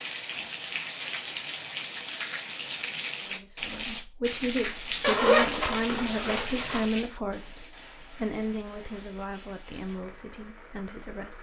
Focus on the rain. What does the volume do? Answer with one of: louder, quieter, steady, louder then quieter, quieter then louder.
quieter.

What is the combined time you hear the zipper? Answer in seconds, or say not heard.
2 s.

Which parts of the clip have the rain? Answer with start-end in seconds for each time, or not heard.
0.0-11.3.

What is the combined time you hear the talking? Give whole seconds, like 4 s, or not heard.
8 s.